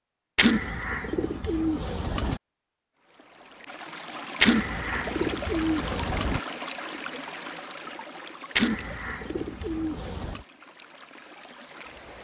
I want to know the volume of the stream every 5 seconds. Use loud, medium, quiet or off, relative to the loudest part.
loud, loud, medium.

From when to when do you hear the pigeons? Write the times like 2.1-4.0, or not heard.
0.3-2.4, 4.4-6.4, 8.6-10.4.